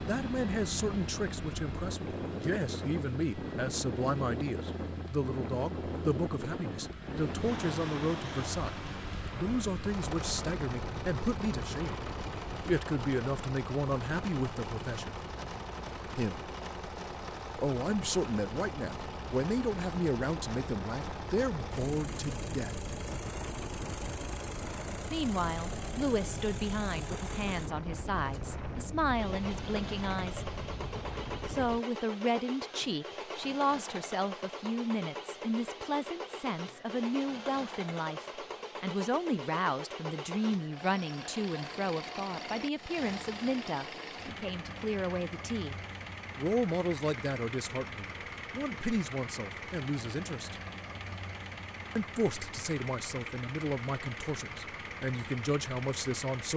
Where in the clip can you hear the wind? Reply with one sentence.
The wind can be heard from 0.0 to 31.8 s.